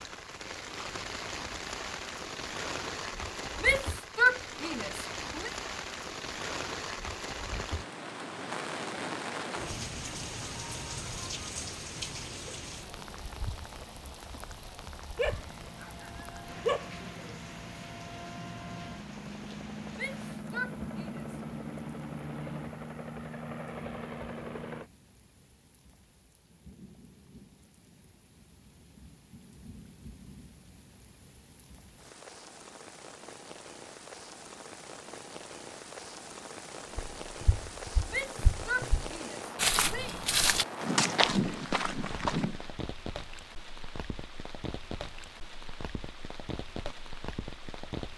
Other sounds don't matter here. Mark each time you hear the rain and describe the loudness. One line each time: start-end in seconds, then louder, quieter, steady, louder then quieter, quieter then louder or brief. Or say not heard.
0.0-48.1 quieter then louder.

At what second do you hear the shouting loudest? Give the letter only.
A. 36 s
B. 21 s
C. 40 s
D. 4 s
D.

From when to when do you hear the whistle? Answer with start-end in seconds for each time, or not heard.
not heard.